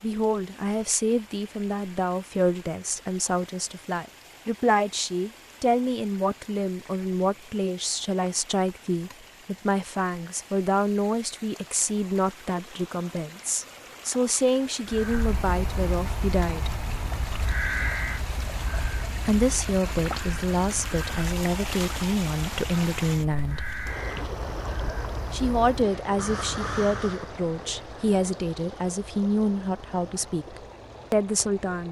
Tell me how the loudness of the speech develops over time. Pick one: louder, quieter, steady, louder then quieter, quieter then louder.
steady.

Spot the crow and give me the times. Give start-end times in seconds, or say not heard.
14.8-27.4.